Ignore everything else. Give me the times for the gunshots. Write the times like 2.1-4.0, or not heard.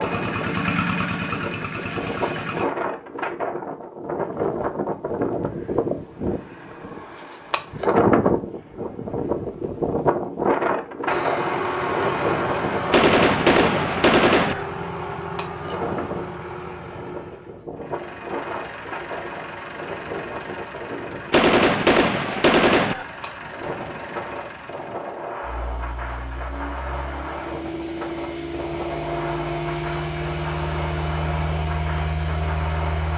12.9-14.7, 21.3-23.1.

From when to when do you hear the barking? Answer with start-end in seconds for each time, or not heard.
not heard.